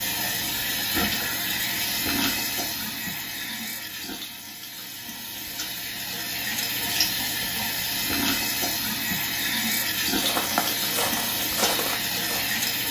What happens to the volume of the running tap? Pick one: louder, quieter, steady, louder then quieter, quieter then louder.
quieter then louder.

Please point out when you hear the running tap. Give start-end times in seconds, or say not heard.
0.0-12.8.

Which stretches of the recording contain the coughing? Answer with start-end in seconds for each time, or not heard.
not heard.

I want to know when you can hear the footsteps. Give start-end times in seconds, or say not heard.
10.2-12.6.